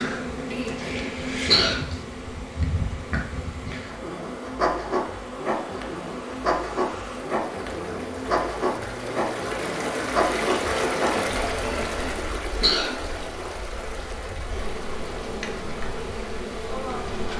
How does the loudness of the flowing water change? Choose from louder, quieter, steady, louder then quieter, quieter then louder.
louder then quieter.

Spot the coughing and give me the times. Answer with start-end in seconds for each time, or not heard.
0.5-1.9, 11.6-12.9.